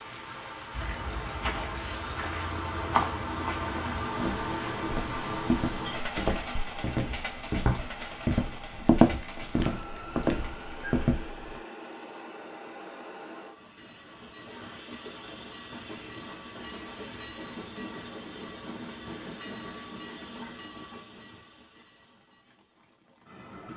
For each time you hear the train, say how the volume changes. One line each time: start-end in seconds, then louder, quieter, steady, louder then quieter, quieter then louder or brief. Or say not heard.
0.0-23.7 quieter.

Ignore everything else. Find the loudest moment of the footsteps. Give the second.
9 s.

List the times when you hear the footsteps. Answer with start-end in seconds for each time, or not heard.
0.8-11.6.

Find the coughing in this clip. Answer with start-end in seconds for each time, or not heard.
not heard.